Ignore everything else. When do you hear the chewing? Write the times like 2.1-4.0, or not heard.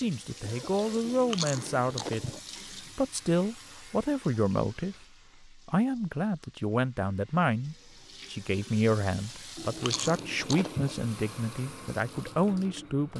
1.0-2.4, 9.6-10.9.